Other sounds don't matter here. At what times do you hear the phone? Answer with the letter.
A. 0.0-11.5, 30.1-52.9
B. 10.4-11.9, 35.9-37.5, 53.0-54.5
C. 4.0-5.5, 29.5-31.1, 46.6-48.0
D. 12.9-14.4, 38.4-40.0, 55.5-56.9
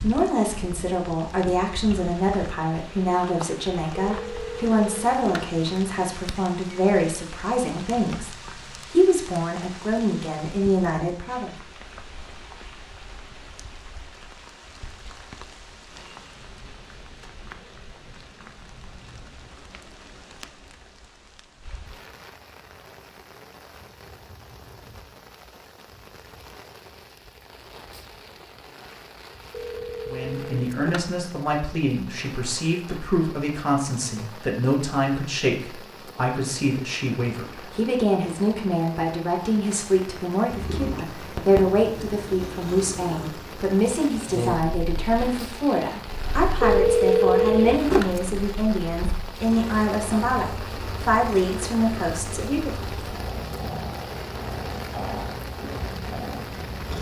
C.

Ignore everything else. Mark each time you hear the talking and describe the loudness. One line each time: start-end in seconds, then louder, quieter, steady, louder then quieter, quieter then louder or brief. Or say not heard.
0.0-11.5 steady
30.1-52.9 steady.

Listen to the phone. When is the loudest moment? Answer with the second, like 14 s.
47 s.